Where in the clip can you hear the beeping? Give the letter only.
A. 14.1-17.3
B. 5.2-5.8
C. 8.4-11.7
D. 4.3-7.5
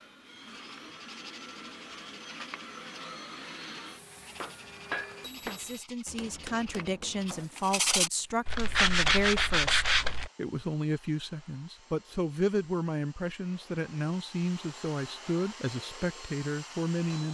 B.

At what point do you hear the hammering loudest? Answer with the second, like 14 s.
5 s.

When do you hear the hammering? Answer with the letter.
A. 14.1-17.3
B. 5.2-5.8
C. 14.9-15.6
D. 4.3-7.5
D.